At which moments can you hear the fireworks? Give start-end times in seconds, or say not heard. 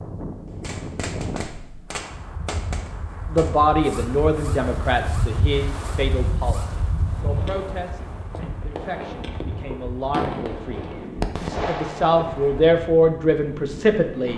0.5-12.8.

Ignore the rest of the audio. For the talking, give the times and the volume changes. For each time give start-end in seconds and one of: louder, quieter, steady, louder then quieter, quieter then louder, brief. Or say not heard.
3.3-14.3 quieter then louder.